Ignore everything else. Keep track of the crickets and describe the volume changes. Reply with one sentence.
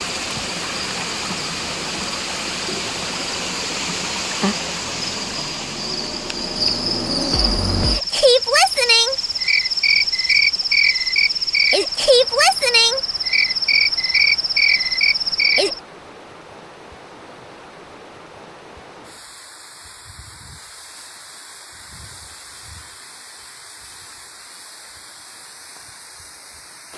The volume of the crickets goes up.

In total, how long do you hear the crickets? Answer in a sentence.
The crickets can be heard for 16 seconds in total.